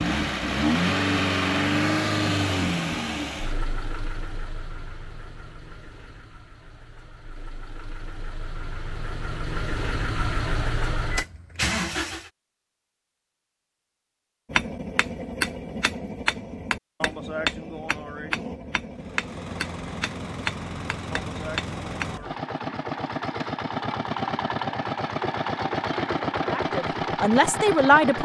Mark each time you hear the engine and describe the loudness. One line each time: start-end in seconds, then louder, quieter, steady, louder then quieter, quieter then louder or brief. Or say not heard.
0.0-12.3 quieter then louder
18.9-28.2 louder.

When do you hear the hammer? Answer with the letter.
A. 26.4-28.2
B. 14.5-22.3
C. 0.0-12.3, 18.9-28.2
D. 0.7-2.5
B.